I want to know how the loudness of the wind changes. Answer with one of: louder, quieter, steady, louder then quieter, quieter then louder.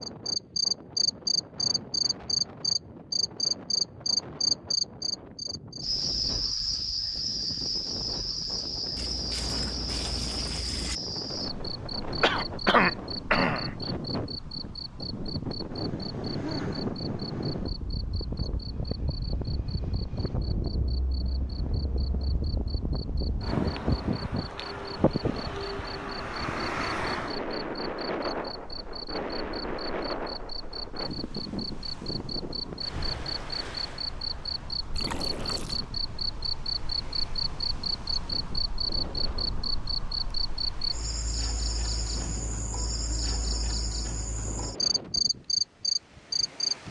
louder then quieter.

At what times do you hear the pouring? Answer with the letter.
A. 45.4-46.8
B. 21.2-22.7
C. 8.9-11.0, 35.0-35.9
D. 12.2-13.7
C.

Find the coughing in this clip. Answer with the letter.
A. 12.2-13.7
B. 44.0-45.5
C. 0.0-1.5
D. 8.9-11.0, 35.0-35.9
A.